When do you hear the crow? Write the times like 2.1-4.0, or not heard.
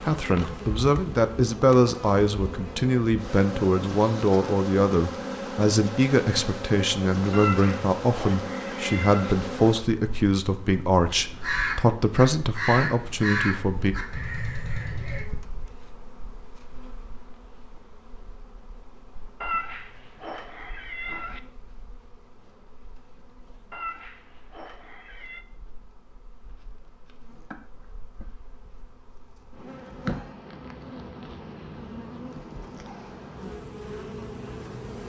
11.1-15.2.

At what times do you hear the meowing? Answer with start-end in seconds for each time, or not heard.
7.3-9.3, 19.4-21.4, 23.7-25.4.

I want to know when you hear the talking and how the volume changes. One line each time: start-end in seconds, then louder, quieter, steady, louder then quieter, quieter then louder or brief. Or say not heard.
0.0-13.9 steady.